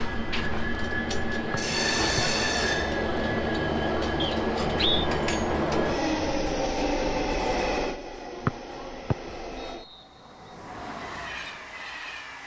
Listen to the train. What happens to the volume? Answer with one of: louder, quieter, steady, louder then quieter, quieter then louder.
quieter.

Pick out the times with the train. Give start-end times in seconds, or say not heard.
0.0-12.4.